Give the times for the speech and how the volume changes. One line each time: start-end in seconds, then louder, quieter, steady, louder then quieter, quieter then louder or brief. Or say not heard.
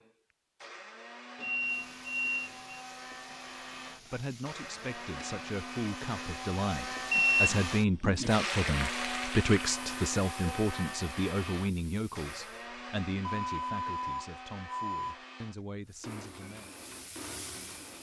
3.9-16.7 louder then quieter.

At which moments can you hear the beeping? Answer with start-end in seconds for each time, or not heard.
1.4-2.8, 7.1-8.3, 13.2-15.2.